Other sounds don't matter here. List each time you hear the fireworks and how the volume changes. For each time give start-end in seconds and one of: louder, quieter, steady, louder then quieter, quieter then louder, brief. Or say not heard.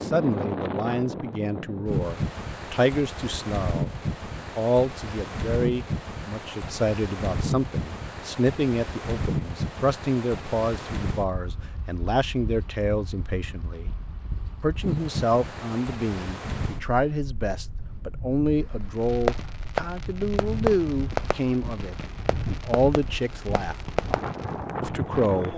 18.9-24.6 quieter then louder.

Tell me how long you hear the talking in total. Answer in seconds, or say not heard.
24 s.